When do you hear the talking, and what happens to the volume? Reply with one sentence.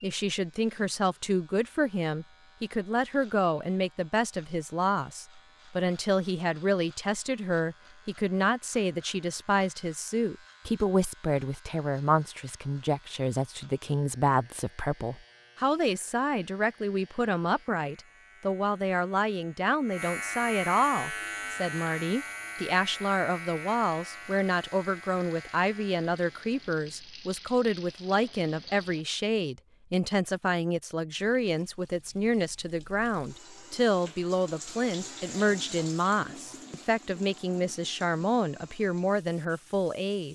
The talking can be heard from 0.0 to 40.2 s, at a steady volume.